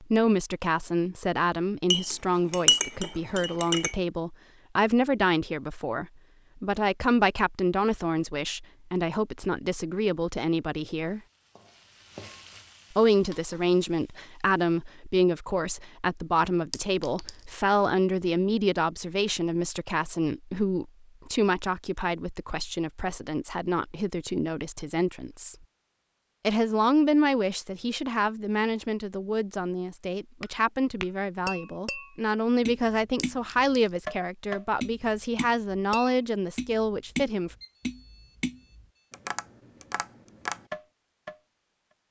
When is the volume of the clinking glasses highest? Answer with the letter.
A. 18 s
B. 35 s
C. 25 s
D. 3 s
D.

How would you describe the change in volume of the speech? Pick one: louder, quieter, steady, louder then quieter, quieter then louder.
steady.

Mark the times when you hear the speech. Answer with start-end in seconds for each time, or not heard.
0.0-11.2, 12.9-25.6, 26.4-37.5.